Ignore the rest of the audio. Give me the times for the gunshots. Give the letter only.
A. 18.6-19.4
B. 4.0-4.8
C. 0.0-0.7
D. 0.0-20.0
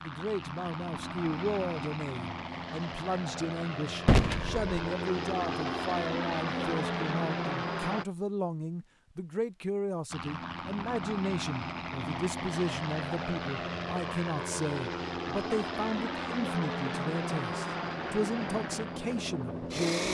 B.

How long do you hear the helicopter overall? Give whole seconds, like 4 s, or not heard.
18 s.